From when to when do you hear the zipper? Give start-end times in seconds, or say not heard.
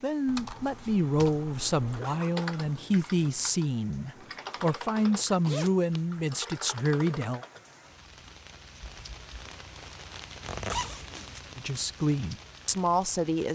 1.9-2.9, 5.0-6.0, 10.4-11.4.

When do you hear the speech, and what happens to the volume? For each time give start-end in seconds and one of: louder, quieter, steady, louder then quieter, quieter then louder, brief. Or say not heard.
0.0-7.4 steady
11.6-13.4 brief.